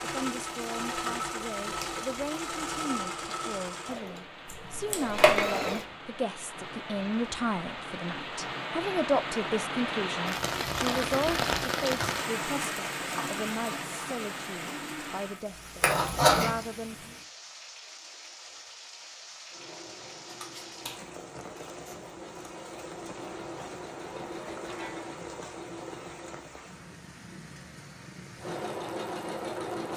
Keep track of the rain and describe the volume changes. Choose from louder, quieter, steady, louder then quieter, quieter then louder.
louder then quieter.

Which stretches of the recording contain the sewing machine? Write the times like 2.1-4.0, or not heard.
0.0-6.0, 19.5-26.5, 28.4-29.9.